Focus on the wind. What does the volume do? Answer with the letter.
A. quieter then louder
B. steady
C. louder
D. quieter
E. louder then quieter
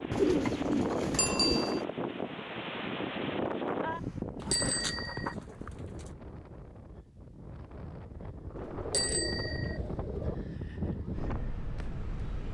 A.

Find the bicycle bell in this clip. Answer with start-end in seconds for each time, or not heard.
1.1-1.8, 4.5-5.3, 8.9-9.8.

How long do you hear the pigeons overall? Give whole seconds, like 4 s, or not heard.
5 s.